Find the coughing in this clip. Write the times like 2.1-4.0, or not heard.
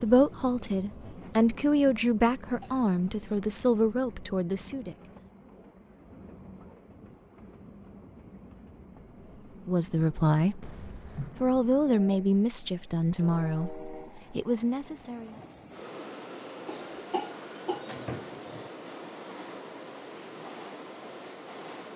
2.6-3.4, 10.6-11.6, 16.6-18.7.